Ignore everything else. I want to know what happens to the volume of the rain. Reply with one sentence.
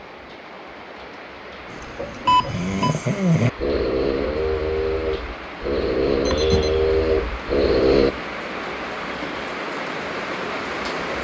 The volume of the rain goes up.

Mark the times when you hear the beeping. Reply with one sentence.
You can hear the beeping from 2.2 to 3.0 s and from 6.2 to 6.7 s.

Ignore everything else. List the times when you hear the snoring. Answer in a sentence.
The snoring can be heard from 1.7 to 8.2 s.